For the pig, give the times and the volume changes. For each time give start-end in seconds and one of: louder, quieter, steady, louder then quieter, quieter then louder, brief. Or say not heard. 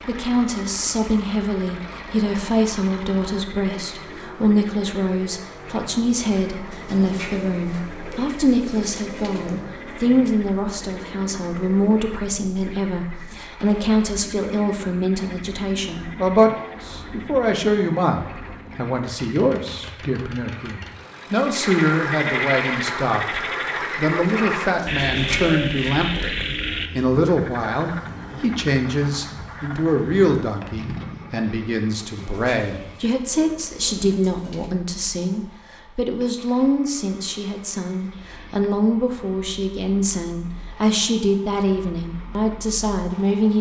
not heard.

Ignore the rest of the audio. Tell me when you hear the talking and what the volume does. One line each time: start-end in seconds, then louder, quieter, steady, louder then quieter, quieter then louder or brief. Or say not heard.
0.1-43.5 steady.